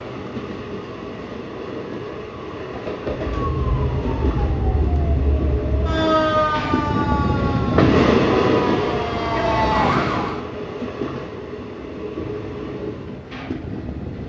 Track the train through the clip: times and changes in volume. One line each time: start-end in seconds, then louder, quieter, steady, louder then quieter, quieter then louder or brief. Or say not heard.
0.0-14.2 louder then quieter.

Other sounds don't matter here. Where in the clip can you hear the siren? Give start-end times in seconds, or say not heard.
3.1-10.4.